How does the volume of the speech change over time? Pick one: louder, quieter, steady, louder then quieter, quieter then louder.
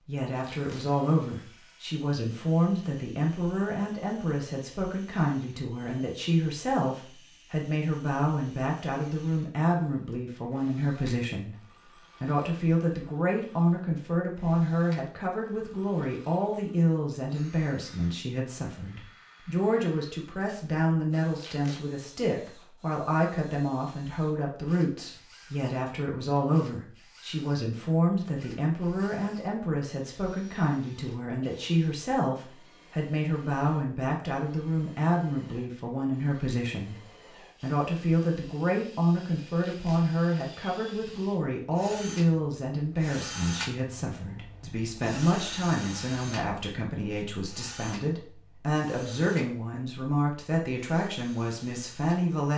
steady.